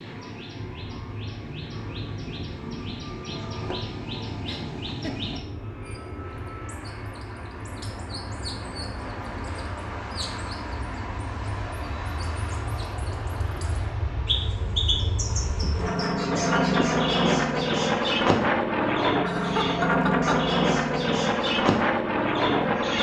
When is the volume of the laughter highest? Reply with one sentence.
The volume of the laughter peaks at 20 seconds.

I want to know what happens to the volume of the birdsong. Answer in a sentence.
The loudness of the birdsong goes up.